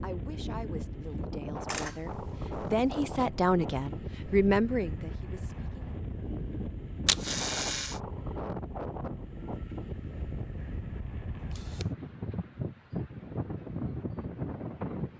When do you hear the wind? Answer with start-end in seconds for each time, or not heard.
0.0-15.1.